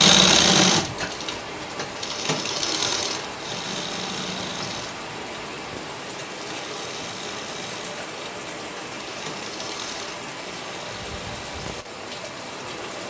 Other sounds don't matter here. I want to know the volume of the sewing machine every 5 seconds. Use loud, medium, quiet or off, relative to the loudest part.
loud, quiet, quiet.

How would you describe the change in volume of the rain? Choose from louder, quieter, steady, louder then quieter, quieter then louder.
steady.